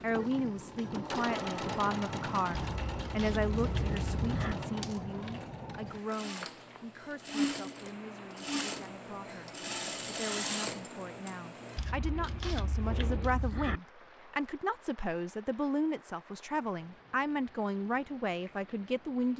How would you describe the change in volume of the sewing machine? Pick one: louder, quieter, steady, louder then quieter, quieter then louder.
quieter then louder.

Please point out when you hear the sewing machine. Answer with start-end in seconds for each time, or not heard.
0.0-11.8.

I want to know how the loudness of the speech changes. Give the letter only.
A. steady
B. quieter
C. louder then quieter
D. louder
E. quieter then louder
E.